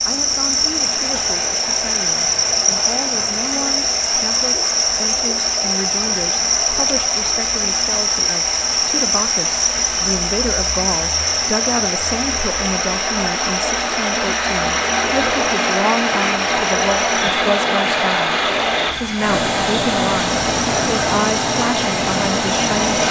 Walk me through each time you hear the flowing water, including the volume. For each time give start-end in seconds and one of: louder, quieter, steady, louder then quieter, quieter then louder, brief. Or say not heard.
0.0-23.0 louder.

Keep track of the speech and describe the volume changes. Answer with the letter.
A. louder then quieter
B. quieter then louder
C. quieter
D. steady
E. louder
E.